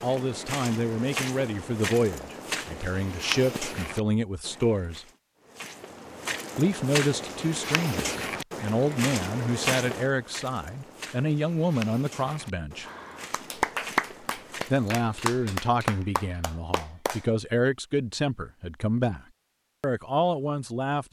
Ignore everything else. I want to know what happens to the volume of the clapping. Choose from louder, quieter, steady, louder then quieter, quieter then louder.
quieter.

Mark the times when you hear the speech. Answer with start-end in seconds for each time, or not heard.
0.0-5.0, 6.5-12.8, 14.7-19.2, 19.8-21.0.